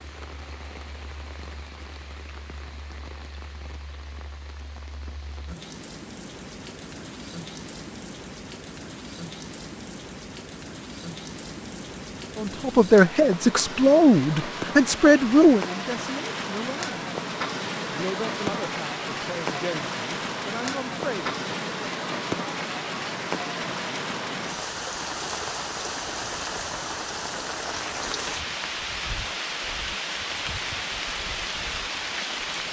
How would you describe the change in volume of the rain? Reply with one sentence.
The loudness of the rain goes up.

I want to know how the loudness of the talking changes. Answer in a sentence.
The volume of the talking goes down.